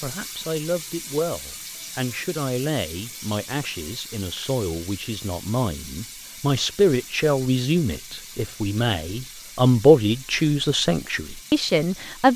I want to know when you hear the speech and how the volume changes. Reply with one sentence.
You can hear the speech from 0.0 to 12.3 s, getting louder.